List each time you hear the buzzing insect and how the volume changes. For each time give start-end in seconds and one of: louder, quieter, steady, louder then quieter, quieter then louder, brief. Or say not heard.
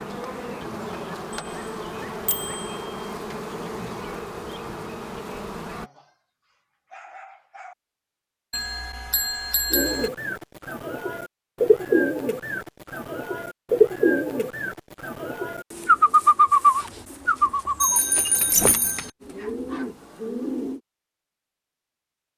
0.0-5.9 steady.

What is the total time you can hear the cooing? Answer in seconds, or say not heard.
11 s.